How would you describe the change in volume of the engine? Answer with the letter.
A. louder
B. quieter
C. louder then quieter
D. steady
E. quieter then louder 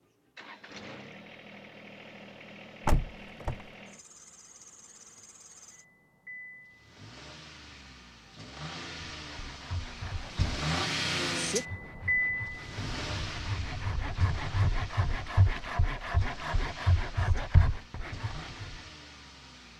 C.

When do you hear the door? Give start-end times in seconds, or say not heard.
2.9-3.6.